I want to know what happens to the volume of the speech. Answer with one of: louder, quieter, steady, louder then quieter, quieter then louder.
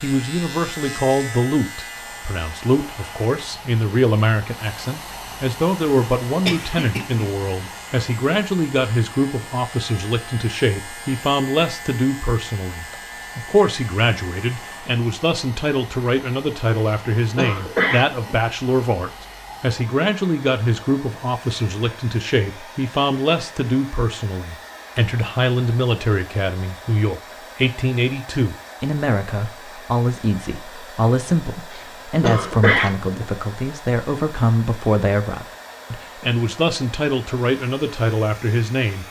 steady.